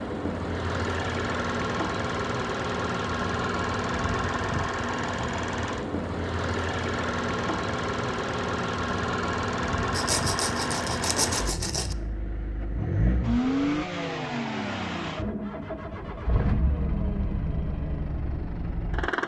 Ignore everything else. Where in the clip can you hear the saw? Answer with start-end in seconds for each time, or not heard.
9.9-11.9.